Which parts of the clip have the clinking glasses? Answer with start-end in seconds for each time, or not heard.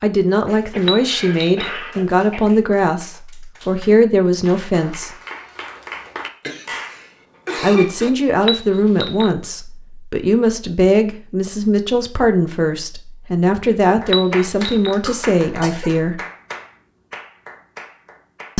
0.8-1.7, 8.4-9.3, 14.1-14.9.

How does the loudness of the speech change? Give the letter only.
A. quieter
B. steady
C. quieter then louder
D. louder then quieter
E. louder
B.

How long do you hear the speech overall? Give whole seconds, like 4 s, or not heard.
14 s.